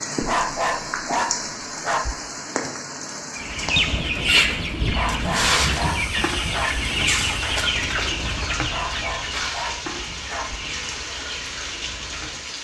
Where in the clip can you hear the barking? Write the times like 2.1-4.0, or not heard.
0.2-2.1, 4.9-6.8, 8.7-10.6.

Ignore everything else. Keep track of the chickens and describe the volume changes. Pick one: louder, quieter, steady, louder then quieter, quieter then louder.
quieter.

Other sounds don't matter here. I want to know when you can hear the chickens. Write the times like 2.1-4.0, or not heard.
3.4-12.4.